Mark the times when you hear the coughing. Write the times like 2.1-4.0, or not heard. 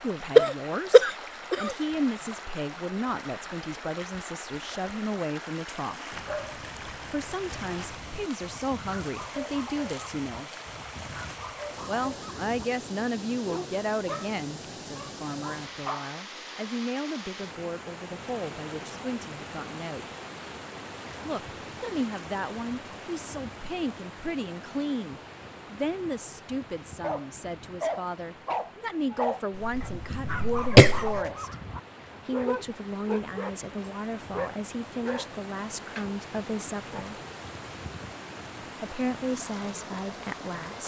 0.3-1.8, 29.6-31.2.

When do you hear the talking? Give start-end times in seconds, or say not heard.
0.0-6.2, 7.1-10.5, 11.8-20.1, 21.2-31.6, 32.2-37.1, 38.8-40.8.